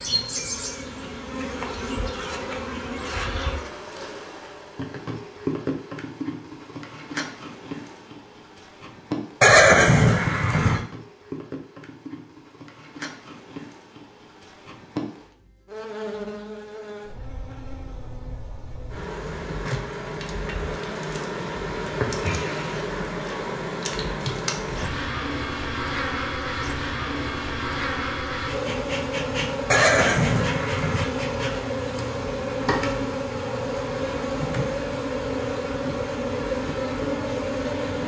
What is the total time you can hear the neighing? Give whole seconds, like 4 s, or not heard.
3 s.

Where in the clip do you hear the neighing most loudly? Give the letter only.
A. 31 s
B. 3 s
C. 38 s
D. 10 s
D.